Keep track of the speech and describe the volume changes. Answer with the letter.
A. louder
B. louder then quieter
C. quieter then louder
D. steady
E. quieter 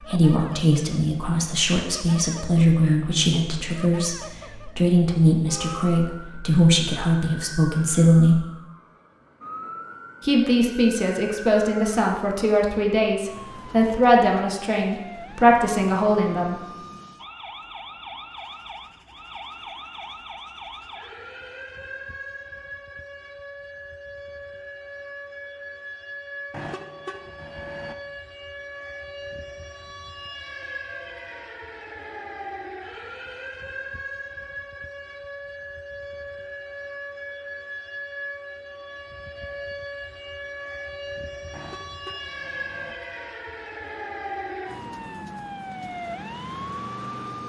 D.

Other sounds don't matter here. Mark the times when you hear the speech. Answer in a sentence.
You can hear the speech from 0.0 to 8.4 s and from 10.2 to 16.6 s.